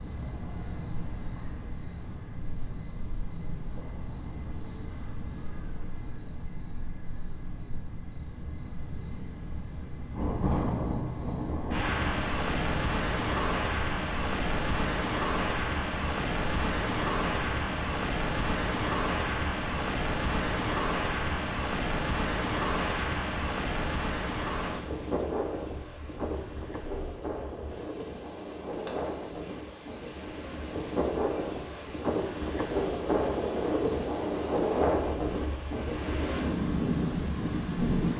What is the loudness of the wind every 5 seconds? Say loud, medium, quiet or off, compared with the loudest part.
off, off, loud, loud, loud, medium, loud, loud.